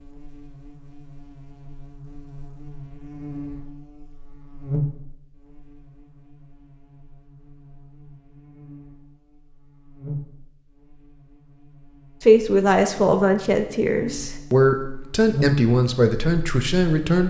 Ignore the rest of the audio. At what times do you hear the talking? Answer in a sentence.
The talking can be heard from 12.2 to 17.2 s.